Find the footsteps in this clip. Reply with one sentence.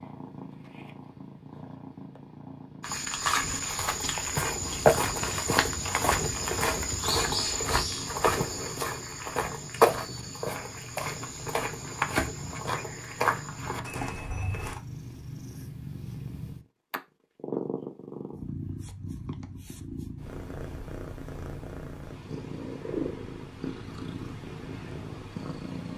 The footsteps can be heard from 2.8 to 14.8 s.